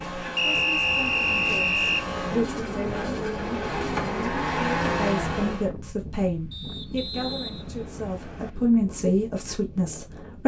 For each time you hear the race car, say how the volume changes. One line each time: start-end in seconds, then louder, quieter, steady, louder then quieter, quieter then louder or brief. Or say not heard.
0.0-5.7 louder.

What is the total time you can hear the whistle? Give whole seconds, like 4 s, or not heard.
4 s.